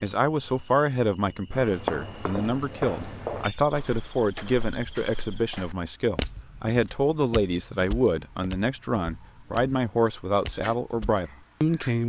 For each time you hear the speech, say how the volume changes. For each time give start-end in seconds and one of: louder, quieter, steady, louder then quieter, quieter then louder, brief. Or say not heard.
0.0-12.0 steady.